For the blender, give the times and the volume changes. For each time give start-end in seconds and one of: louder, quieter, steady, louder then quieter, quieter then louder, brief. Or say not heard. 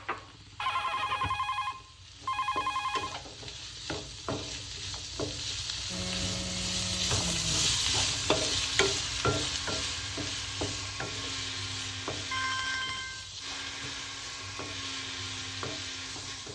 5.9-16.5 steady.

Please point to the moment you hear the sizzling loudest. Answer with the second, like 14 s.
8 s.